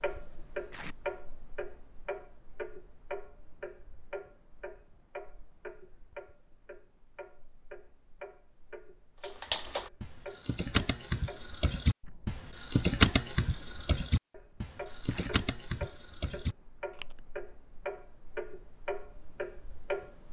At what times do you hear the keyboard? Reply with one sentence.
The keyboard can be heard from 9.2 to 17.1 s.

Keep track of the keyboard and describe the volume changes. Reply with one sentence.
The loudness of the keyboard goes up, then down.